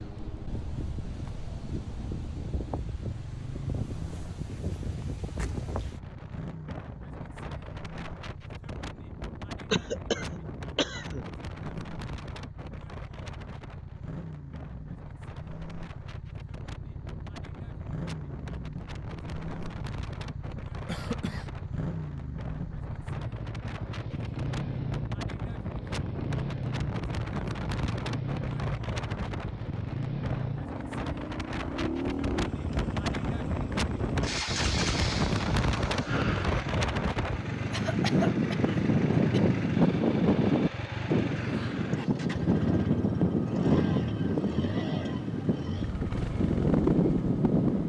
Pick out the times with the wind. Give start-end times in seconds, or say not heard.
0.0-47.8.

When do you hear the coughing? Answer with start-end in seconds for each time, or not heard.
9.7-11.2, 20.9-21.5, 37.7-39.4.